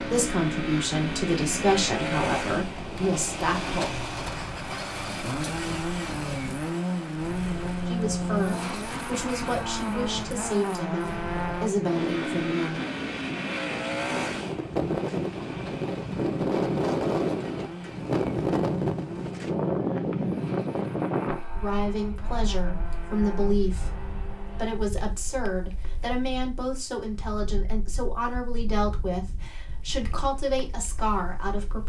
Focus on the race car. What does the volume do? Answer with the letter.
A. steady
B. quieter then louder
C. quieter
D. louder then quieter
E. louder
C.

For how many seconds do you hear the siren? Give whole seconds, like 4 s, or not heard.
not heard.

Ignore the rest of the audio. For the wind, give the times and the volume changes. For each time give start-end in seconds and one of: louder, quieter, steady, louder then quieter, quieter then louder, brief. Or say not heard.
0.0-31.8 louder then quieter.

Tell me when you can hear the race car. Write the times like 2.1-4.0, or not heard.
0.0-24.8.